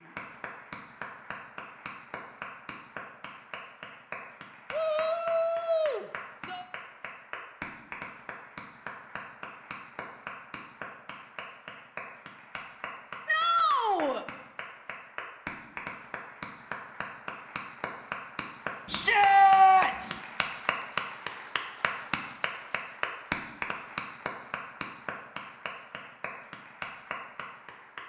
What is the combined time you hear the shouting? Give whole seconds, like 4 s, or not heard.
4 s.